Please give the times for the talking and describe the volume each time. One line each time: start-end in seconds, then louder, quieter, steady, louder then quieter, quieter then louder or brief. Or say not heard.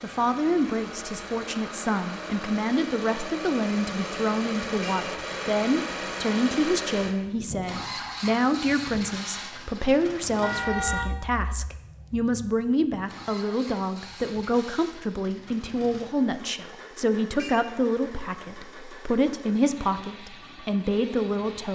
0.0-21.6 steady.